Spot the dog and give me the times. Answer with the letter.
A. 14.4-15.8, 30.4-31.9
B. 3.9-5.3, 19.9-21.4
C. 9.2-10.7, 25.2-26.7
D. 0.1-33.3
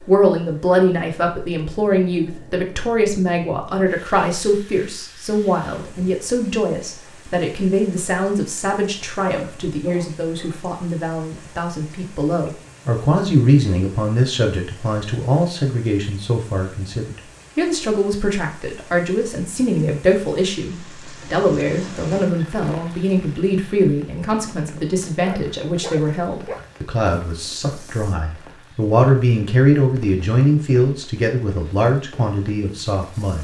C.